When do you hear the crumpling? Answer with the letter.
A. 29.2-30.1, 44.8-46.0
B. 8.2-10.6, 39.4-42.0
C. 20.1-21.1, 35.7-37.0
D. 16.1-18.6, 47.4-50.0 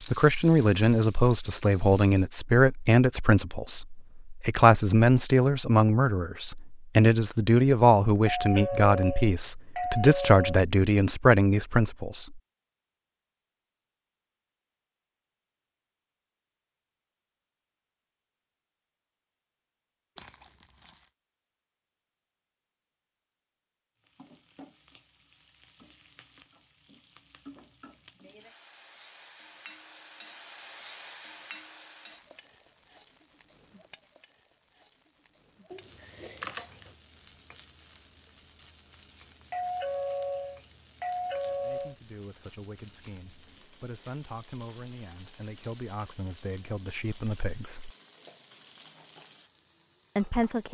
C.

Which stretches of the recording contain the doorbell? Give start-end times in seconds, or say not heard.
8.2-10.6, 39.4-42.0.